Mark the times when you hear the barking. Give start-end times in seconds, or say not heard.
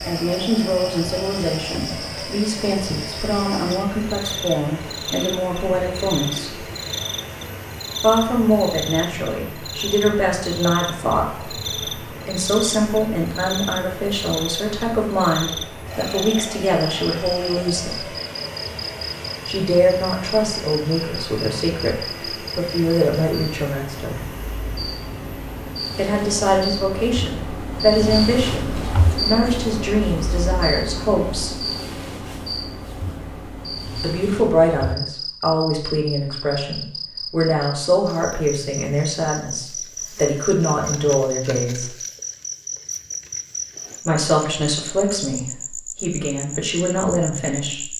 not heard.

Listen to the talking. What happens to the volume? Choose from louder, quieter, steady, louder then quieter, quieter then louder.
steady.